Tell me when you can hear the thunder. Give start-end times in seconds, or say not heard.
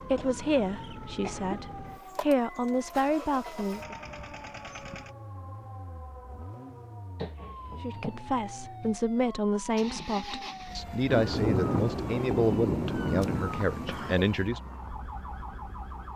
11.1-14.2.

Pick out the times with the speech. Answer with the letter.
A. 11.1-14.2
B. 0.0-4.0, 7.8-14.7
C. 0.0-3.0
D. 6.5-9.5
B.